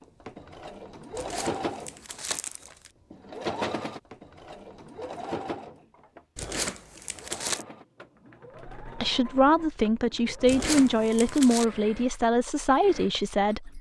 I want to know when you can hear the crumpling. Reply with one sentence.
The crumpling can be heard from 1.1 to 2.9 s, from 6.3 to 7.7 s and from 10.4 to 11.7 s.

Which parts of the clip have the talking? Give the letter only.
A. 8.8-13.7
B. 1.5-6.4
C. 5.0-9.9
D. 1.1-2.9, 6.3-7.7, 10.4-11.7
A.